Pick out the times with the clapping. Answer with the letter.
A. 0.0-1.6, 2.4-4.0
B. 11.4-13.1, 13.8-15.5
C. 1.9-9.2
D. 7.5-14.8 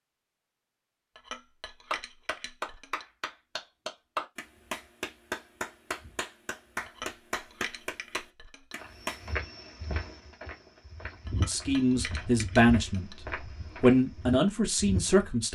C.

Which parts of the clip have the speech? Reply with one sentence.
The speech can be heard from 11.4 to 13.1 s and from 13.8 to 15.5 s.